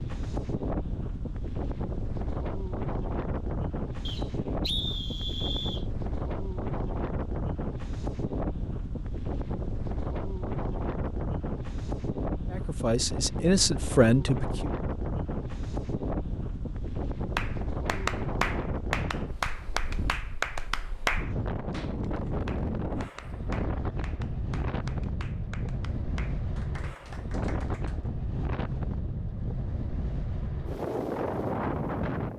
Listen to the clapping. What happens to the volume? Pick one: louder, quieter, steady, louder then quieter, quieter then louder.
quieter.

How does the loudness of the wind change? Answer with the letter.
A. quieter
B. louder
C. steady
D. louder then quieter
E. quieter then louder
C.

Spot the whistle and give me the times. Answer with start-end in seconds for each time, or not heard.
4.0-5.8.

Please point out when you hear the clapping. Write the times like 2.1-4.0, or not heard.
17.4-28.1.